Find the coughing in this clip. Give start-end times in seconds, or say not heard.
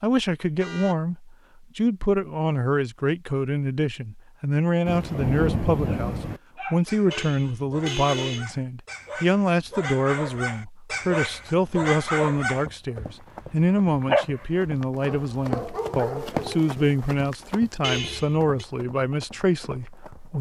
not heard.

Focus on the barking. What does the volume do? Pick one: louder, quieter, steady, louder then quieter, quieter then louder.
louder then quieter.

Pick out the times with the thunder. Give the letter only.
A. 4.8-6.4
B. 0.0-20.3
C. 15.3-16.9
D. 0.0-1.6
A.